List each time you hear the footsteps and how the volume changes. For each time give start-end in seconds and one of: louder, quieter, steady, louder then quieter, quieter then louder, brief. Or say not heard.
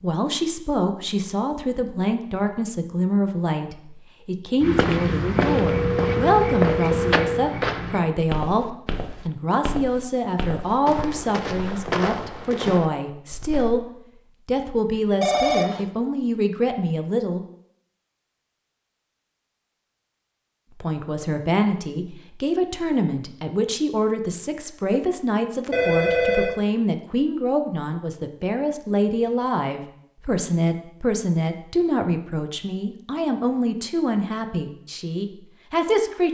4.6-13.8 quieter then louder.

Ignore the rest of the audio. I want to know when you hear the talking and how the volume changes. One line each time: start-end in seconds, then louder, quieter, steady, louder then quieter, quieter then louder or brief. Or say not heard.
0.0-17.4 steady
20.7-36.2 steady.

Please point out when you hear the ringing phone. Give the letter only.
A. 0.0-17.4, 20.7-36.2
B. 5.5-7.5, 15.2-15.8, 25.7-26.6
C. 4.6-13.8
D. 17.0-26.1
B.